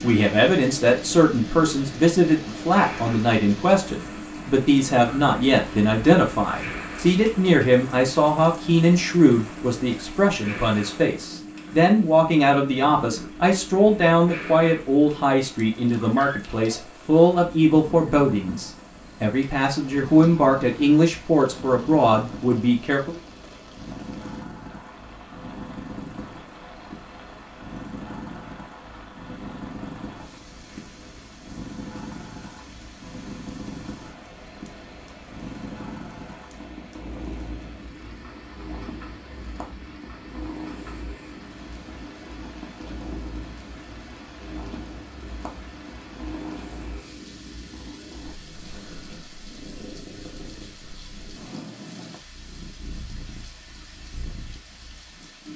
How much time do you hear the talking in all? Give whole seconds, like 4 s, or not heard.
23 s.